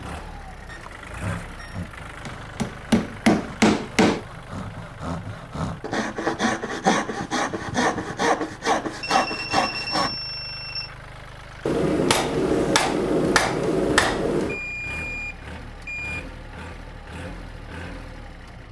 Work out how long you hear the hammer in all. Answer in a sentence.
The hammer can be heard for 5 seconds in total.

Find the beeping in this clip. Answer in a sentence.
The beeping can be heard from 0.7 to 1.8 s, from 9.0 to 10.9 s and from 14.4 to 16.2 s.